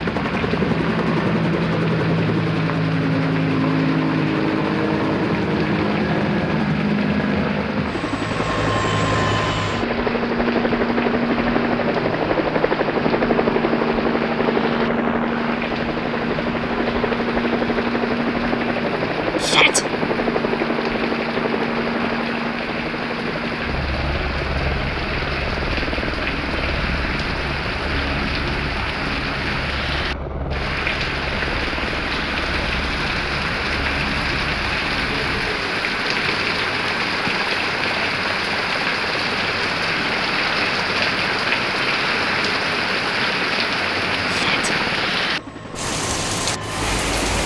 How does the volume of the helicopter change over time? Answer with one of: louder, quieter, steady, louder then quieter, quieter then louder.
quieter.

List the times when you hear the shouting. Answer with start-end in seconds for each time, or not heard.
19.4-19.9, 44.2-44.7.